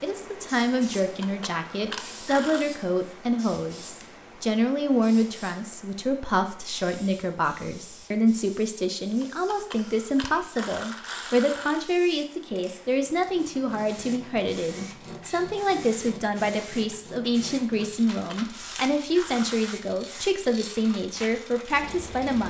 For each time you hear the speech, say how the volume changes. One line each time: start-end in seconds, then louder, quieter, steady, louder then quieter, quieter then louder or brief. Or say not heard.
0.0-22.4 steady.